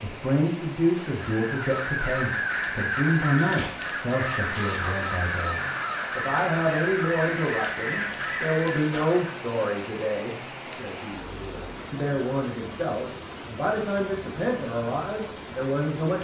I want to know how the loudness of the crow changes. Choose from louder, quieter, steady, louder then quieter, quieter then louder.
steady.